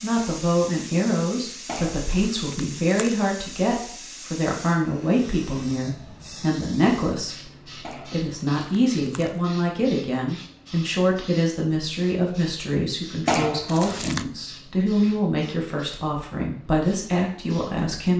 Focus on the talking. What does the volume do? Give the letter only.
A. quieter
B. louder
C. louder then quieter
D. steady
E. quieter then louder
D.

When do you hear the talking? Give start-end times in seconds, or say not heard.
0.0-18.1.